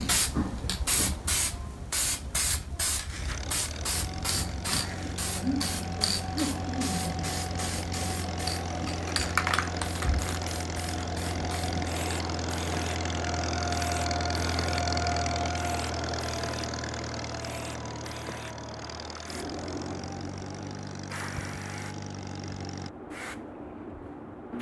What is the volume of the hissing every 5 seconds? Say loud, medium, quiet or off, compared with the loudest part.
loud, loud, medium, medium, medium.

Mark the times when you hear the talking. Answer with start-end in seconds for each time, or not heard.
not heard.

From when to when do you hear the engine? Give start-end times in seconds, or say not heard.
3.1-22.9.